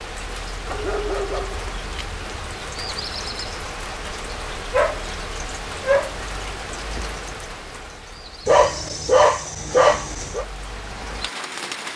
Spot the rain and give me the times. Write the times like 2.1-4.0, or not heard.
0.0-11.9.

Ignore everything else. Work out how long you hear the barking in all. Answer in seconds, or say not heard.
5 s.